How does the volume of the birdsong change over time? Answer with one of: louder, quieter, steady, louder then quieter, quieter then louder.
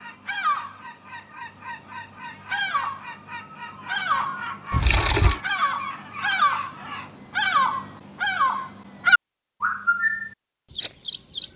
louder.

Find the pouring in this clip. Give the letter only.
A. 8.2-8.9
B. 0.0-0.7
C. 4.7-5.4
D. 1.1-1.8
C.